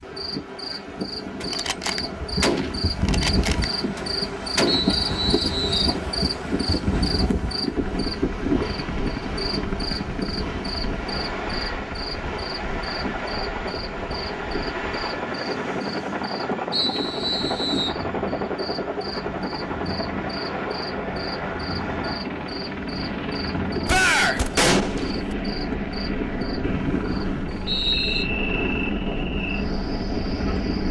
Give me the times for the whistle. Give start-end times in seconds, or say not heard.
4.7-6.0, 16.7-17.9, 26.6-28.2.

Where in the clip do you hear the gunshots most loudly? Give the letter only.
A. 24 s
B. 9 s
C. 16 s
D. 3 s
A.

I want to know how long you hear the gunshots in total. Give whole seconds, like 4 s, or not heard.
5 s.